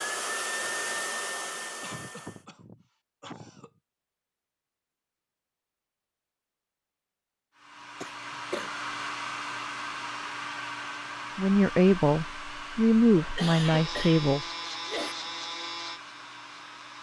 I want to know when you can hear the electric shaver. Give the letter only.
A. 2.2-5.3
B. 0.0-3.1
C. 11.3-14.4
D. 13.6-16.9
D.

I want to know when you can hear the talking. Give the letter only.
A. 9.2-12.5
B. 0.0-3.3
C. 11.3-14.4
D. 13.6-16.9
C.